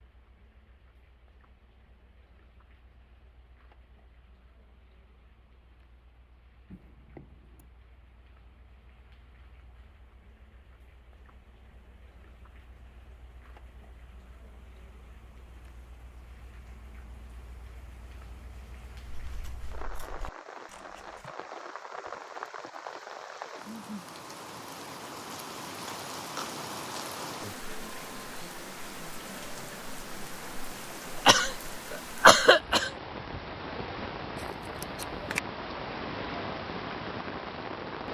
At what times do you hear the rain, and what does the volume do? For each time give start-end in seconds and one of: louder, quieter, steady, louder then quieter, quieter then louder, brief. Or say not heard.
0.0-38.0 louder.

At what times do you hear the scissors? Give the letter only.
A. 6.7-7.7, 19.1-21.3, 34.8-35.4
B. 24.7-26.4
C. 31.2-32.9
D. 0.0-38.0
A.